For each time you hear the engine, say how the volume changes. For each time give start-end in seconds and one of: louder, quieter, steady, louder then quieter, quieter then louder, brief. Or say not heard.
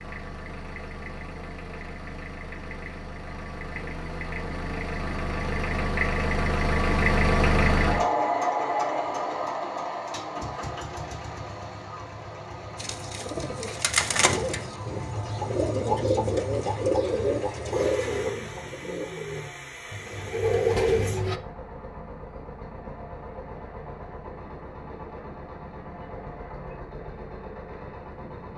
0.0-28.5 louder then quieter.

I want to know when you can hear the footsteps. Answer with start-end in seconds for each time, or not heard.
not heard.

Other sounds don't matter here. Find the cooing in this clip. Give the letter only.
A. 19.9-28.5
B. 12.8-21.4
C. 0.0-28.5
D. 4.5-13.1
B.